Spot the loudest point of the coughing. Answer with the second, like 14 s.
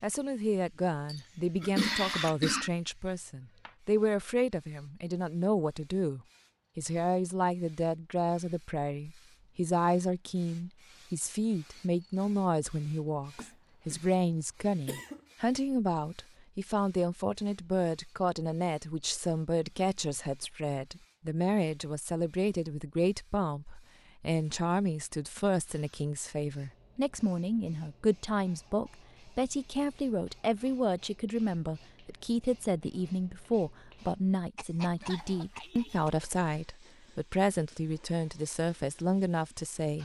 2 s.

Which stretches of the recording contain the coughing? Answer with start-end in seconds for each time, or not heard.
1.1-2.7, 13.3-15.2, 34.5-36.3.